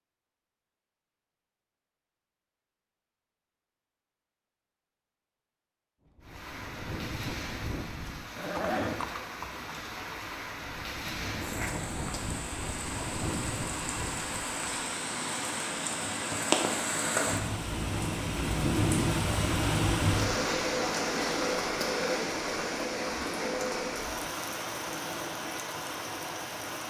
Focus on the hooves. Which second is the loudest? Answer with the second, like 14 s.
9 s.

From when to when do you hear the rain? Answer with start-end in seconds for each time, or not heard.
6.2-26.8.